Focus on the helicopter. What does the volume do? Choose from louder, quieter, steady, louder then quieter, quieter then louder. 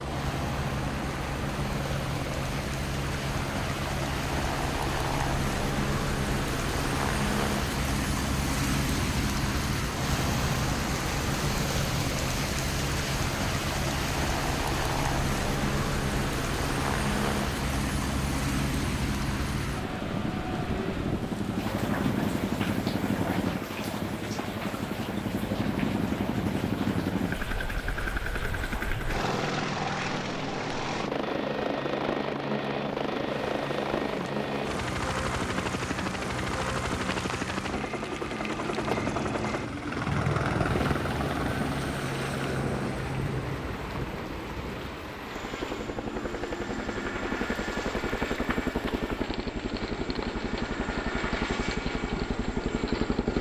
steady.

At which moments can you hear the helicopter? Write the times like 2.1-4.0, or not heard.
0.0-53.3.